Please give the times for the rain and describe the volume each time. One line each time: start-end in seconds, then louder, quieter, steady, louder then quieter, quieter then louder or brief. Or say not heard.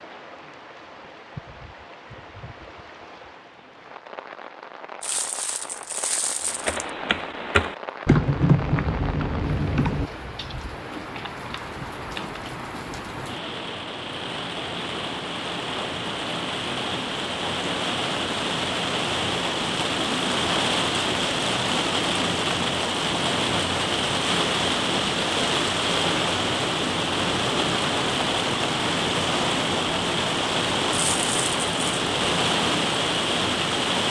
0.0-34.0 louder.